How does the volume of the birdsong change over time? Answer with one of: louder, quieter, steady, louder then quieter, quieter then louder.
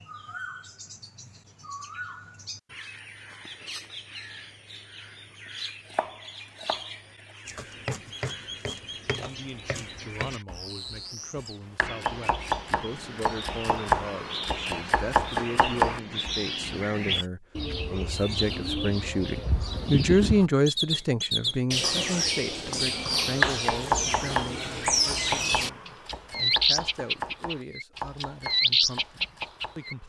louder.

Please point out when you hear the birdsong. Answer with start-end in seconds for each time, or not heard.
0.0-29.9.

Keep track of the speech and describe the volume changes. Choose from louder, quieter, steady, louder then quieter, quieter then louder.
louder then quieter.